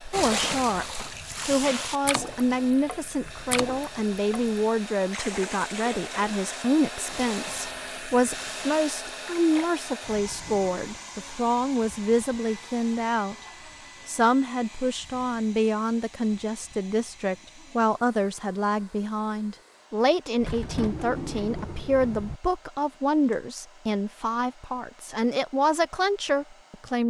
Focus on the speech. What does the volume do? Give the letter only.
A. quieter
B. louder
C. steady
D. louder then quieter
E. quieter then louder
C.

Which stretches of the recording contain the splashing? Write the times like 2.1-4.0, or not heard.
0.1-9.7.